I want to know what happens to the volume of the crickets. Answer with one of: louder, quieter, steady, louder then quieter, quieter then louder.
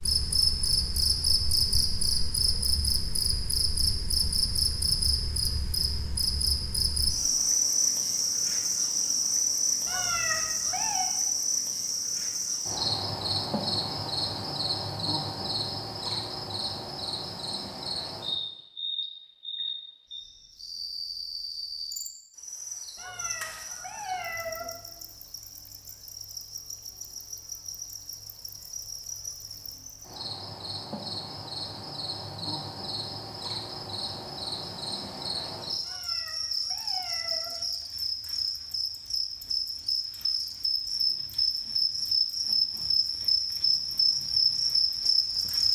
quieter then louder.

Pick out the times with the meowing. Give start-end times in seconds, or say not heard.
9.8-11.1, 22.9-24.7, 35.8-37.5.